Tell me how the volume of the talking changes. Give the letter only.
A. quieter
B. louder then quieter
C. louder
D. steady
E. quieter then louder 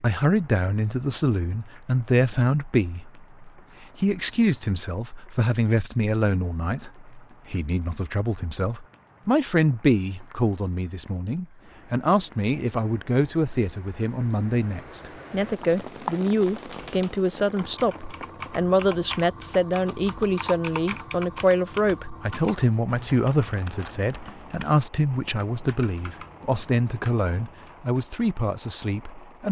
D.